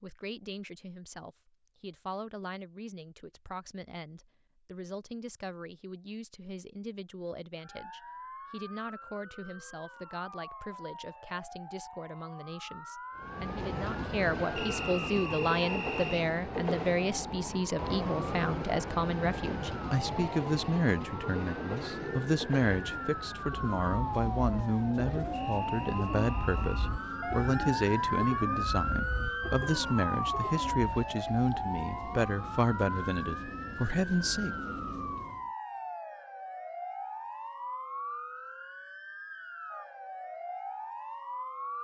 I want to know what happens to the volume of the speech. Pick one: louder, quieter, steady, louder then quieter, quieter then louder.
louder.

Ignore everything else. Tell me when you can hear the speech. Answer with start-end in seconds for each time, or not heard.
0.0-34.5.